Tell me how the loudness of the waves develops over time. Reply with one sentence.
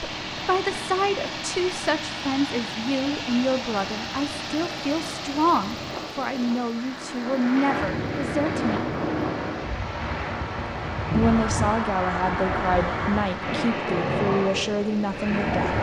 The loudness of the waves goes up.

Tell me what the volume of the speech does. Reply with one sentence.
The loudness of the speech stays about the same.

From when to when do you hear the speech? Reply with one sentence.
The speech can be heard from 0.0 to 8.9 s and from 11.1 to 15.7 s.